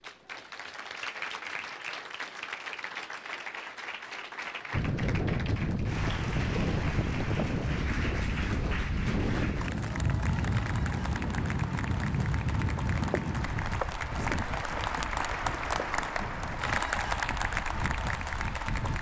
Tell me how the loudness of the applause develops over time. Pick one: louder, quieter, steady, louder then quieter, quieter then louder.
louder.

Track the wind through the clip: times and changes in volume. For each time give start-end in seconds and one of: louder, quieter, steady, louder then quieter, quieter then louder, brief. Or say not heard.
4.7-18.9 quieter.